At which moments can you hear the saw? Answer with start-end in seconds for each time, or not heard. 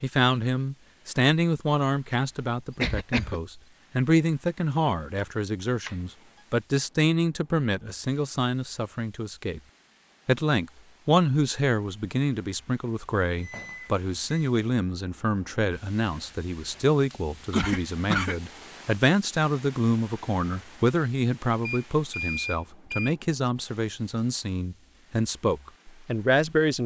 not heard.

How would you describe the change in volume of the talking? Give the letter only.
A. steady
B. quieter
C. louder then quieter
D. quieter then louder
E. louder
A.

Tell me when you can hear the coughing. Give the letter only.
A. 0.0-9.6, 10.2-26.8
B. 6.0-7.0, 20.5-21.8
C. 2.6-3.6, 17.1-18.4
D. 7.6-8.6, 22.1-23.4
C.